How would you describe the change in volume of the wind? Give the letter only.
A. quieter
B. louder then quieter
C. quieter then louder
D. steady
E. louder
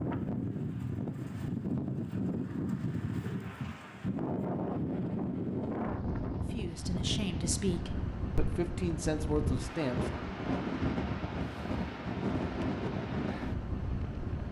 D.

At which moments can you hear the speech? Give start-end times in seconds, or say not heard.
6.3-10.2.